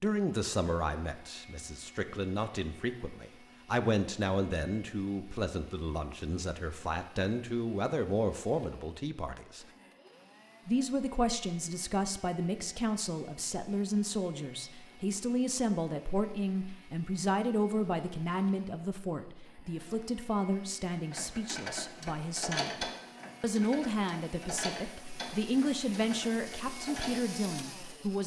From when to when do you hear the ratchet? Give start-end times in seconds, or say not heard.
21.1-27.2.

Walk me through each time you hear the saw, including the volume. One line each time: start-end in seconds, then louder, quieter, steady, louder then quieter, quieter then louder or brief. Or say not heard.
not heard.